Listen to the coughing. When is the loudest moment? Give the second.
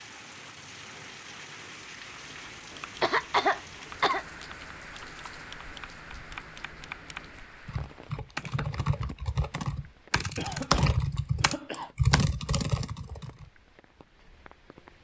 3 s.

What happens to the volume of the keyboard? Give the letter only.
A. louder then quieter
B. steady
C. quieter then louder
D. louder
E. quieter
D.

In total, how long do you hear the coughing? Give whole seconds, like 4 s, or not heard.
3 s.